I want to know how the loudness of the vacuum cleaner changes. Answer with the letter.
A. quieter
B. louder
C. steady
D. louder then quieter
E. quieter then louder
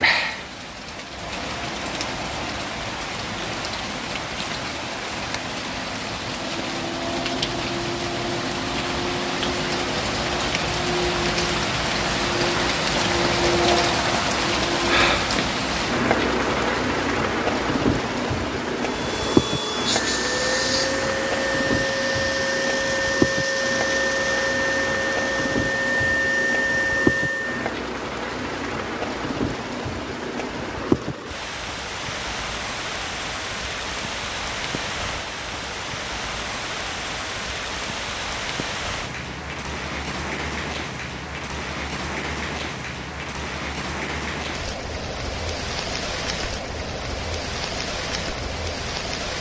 C.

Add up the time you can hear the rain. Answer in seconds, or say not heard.
49 s.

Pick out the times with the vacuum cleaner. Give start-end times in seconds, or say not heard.
18.8-27.7.